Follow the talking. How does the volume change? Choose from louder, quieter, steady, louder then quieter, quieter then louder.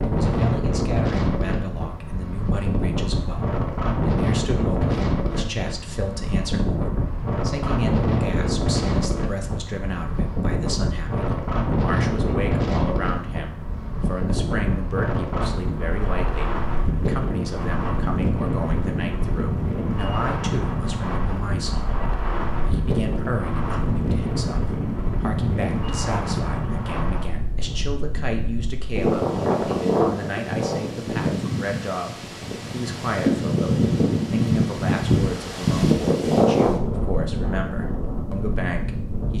steady.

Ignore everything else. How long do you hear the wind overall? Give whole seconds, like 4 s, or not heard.
39 s.